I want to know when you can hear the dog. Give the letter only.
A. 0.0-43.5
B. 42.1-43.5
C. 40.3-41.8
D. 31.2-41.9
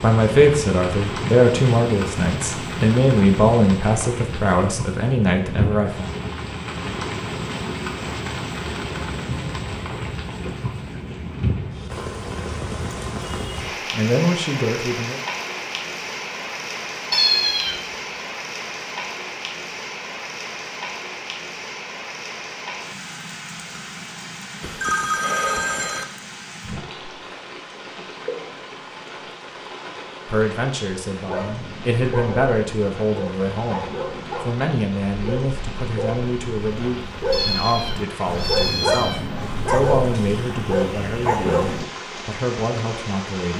D.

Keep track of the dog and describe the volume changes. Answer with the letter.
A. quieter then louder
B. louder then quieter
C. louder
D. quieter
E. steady
C.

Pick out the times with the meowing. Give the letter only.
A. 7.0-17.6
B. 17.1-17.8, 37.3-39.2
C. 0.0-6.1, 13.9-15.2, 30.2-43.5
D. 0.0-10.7
B.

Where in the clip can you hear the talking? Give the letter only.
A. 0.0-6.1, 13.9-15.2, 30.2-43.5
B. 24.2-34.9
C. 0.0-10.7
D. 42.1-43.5
A.